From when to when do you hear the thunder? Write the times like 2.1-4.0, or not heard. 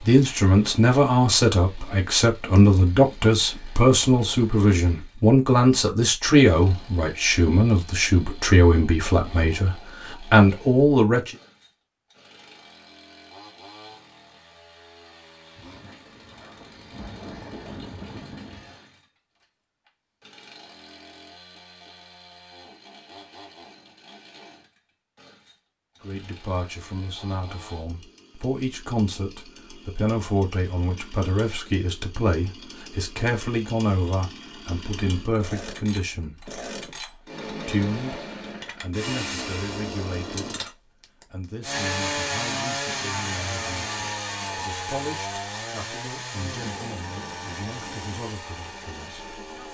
15.6-18.8, 46.4-48.2.